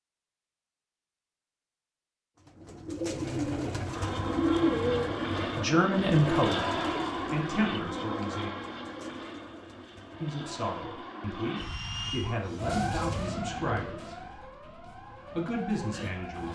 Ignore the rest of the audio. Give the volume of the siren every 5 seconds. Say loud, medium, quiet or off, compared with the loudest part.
off, off, loud, medium.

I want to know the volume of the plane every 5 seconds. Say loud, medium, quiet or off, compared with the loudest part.
loud, loud, medium, off.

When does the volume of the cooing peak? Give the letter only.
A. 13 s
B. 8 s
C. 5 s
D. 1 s
C.